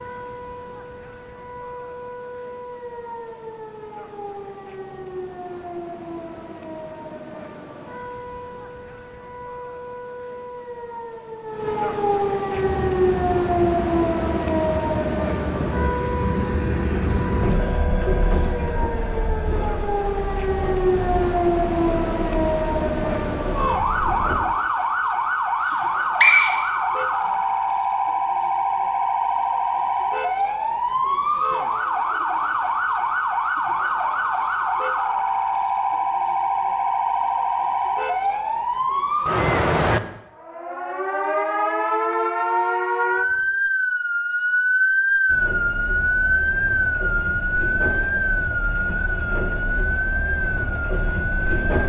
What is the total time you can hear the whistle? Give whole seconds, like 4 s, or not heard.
2 s.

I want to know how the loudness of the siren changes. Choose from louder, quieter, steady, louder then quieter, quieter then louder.
louder.